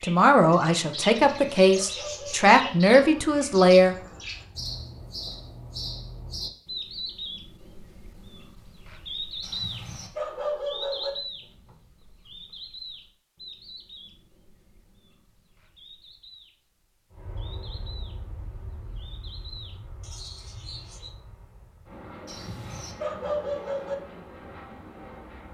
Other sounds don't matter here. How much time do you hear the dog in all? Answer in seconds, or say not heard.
5 s.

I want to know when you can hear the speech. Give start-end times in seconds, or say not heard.
0.0-4.0.